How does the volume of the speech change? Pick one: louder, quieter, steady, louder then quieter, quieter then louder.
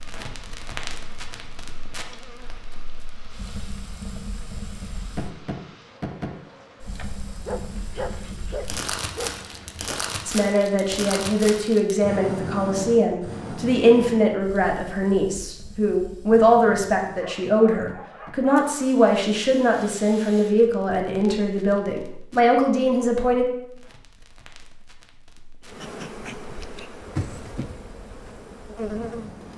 steady.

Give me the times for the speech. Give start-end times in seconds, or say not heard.
10.2-23.4.